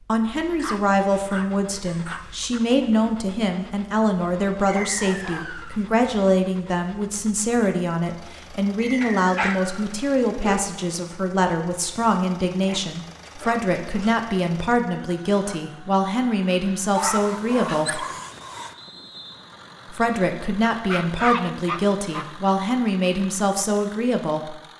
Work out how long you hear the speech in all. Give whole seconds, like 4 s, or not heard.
23 s.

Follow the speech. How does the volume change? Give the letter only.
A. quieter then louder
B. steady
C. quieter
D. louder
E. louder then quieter
B.